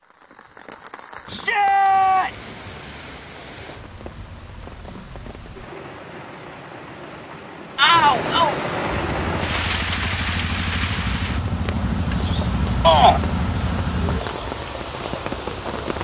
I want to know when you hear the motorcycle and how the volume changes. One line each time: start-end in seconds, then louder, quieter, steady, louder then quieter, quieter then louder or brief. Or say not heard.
8.8-14.2 louder.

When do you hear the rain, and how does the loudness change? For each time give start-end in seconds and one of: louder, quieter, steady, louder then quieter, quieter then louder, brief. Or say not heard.
0.0-15.9 louder.